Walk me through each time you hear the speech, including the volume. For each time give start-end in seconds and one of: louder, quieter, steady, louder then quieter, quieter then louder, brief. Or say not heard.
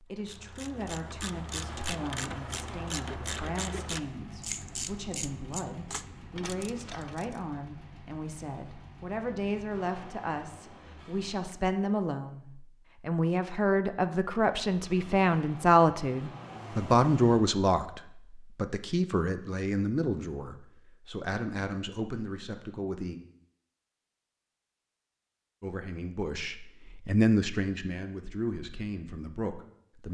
0.0-23.2 louder then quieter
25.6-30.1 louder then quieter.